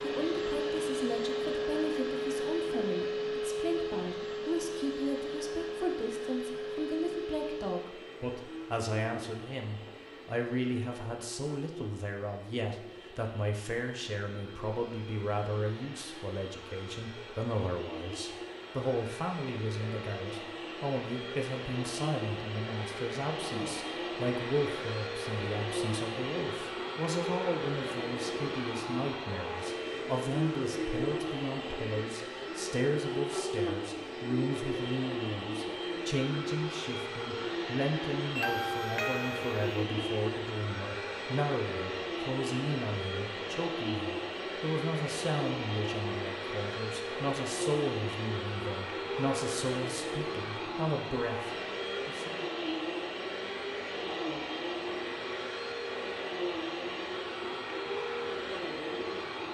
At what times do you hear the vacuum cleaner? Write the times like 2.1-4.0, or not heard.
0.0-59.5.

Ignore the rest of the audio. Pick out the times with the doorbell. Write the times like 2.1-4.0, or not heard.
38.4-39.8.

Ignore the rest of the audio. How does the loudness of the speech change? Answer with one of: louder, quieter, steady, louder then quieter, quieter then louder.
steady.